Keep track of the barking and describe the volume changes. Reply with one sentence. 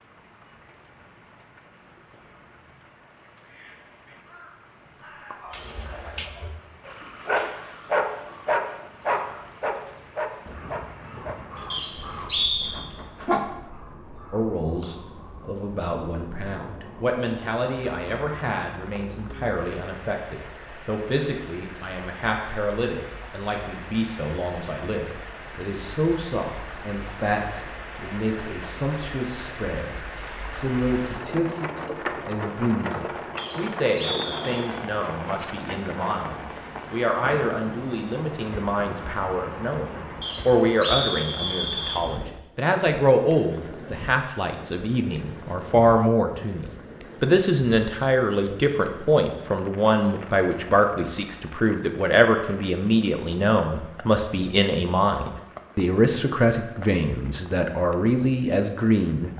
The loudness of the barking goes up, then down.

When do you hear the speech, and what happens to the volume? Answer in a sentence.
You can hear the speech from 14.3 to 59.3 s, getting louder.